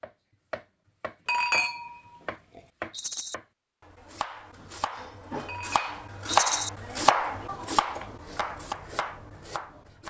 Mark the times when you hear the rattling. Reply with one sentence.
The rattling can be heard from 2.9 to 3.4 s and from 6.2 to 6.7 s.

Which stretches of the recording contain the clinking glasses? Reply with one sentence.
You can hear the clinking glasses from 1.2 to 2.6 s and from 5.5 to 6.8 s.